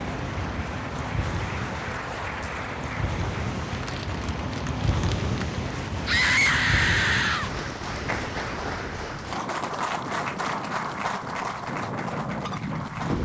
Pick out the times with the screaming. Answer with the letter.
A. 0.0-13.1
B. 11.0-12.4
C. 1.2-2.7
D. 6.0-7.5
D.